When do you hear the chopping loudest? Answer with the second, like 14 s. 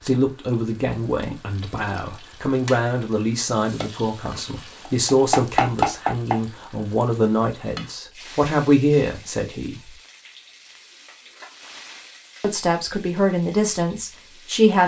6 s.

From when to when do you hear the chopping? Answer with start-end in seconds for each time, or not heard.
3.6-6.4.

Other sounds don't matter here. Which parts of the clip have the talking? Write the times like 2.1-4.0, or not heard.
0.0-9.9, 12.4-14.8.